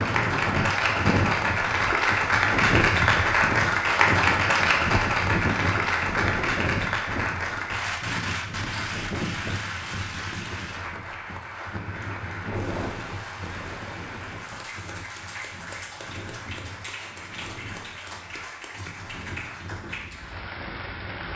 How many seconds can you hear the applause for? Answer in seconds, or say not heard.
21 s.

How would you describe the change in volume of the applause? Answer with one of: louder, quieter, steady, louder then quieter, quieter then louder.
quieter.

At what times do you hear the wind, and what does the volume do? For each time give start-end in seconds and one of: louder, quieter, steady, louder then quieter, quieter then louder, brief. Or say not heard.
0.0-21.3 quieter.